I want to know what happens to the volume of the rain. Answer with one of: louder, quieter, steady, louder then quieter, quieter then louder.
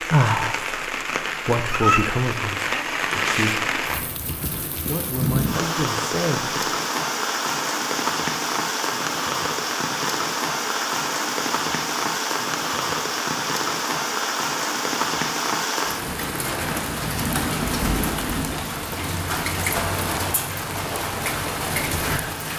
steady.